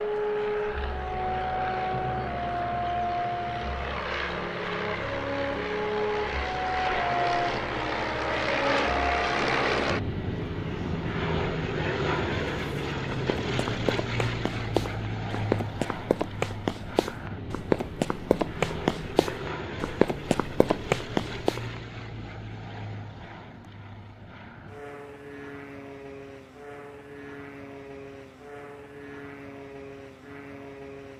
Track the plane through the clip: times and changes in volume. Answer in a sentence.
You can hear the plane from 0.0 to 31.1 s, getting quieter.